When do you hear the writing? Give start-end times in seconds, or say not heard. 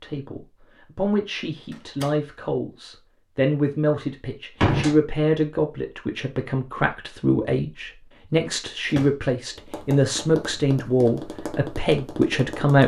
not heard.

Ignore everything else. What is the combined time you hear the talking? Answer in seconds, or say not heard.
13 s.